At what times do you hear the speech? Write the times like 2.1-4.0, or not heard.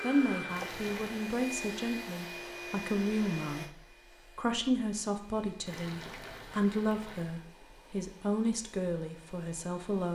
0.0-10.0.